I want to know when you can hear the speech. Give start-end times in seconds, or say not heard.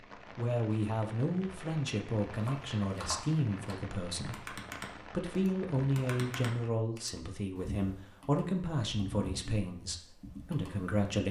0.1-11.2.